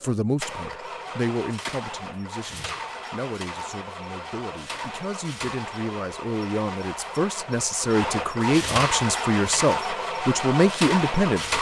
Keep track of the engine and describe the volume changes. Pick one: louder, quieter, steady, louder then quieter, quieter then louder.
louder.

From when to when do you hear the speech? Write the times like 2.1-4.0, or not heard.
0.0-11.5.